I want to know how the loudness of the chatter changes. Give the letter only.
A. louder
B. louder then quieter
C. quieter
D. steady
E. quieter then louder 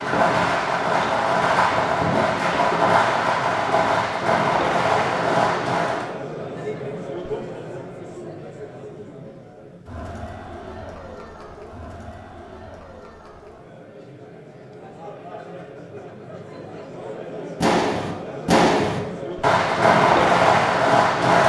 E.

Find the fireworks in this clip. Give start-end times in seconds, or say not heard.
0.0-6.2, 17.6-21.4.